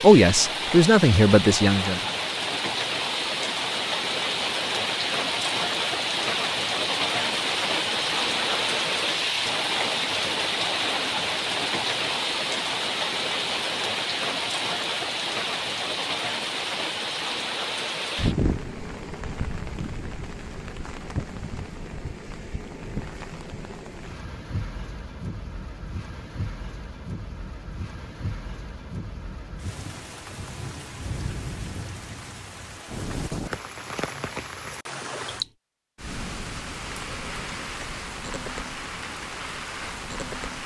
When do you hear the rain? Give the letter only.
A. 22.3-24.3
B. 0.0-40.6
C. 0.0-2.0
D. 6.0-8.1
B.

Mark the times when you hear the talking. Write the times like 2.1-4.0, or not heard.
0.0-2.0.